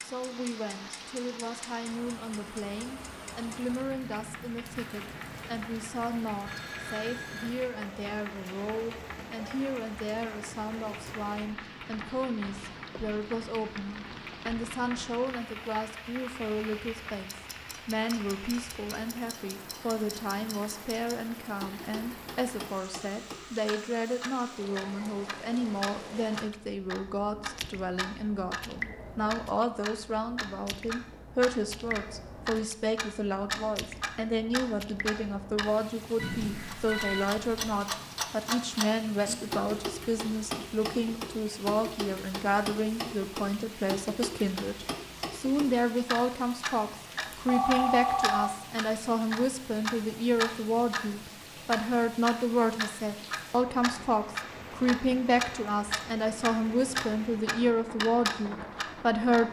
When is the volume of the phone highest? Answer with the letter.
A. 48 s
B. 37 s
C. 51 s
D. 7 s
A.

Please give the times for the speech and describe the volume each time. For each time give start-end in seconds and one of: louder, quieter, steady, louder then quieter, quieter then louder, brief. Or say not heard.
0.0-59.4 louder.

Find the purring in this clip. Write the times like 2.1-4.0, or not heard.
not heard.